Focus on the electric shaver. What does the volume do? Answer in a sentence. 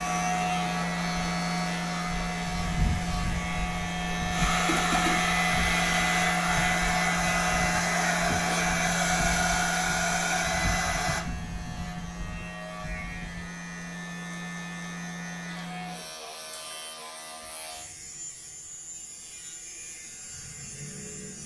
The loudness of the electric shaver goes down.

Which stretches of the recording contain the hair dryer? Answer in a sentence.
The hair dryer can be heard from 0.0 to 11.2 s.